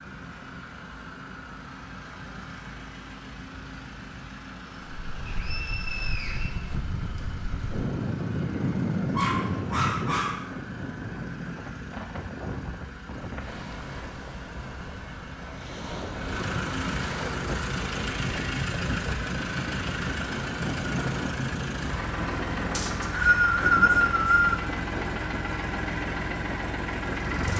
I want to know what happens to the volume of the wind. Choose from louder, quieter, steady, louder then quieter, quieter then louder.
quieter.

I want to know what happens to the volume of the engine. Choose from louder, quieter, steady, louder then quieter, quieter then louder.
louder.